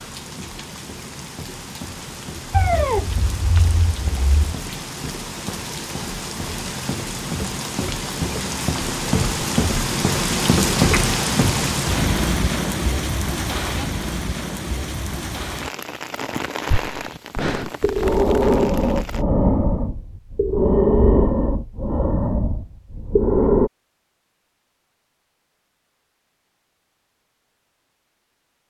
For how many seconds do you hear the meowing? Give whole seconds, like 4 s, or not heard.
2 s.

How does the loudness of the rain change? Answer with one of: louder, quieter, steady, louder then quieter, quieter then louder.
louder then quieter.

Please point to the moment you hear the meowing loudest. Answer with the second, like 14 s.
3 s.